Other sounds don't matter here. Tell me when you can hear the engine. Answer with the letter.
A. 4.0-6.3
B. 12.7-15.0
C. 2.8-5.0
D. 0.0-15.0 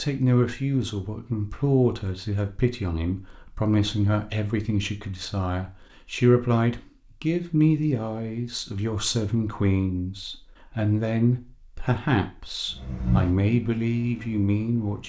B.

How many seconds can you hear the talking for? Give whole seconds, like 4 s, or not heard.
15 s.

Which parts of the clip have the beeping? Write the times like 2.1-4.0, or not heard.
not heard.